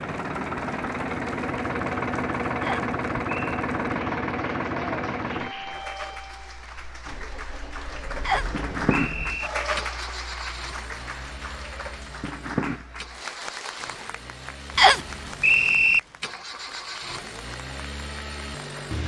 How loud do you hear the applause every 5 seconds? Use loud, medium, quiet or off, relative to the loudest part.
medium, loud, loud, medium.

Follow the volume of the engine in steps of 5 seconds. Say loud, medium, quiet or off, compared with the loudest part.
loud, medium, quiet, medium.